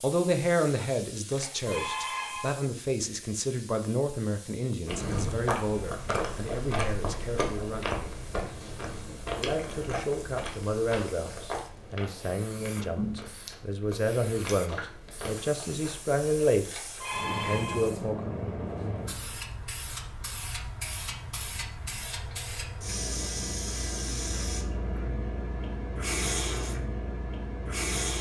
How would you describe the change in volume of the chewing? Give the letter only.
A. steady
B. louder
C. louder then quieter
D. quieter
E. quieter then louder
D.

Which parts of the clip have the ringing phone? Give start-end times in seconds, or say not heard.
1.3-2.6, 16.6-17.9.